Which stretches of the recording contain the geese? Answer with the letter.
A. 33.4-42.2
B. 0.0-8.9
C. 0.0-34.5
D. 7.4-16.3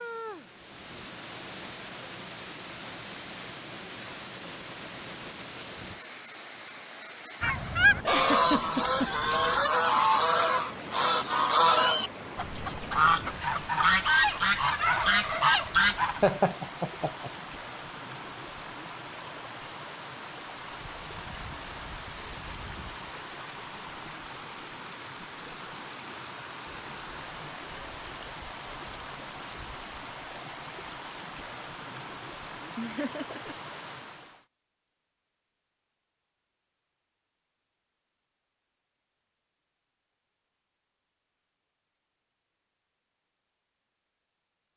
D.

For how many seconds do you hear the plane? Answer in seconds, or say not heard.
not heard.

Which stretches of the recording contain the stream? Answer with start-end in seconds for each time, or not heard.
0.0-34.5.